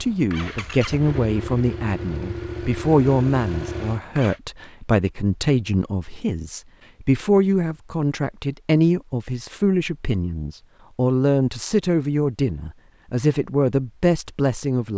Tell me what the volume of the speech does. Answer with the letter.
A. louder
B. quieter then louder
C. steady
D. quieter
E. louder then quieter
C.